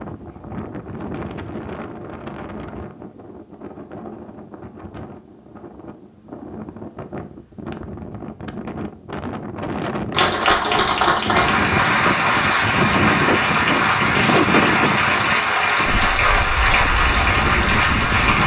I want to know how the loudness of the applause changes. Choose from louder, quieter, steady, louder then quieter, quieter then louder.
steady.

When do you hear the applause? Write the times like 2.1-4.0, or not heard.
10.1-18.4.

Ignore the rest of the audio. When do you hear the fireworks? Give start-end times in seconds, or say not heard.
not heard.